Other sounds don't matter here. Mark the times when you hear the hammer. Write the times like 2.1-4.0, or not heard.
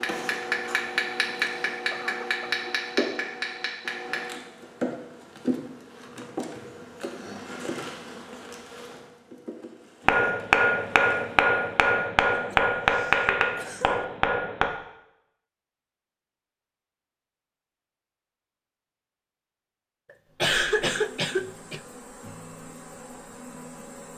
0.0-4.3, 10.1-14.7.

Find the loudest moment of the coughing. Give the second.
21 s.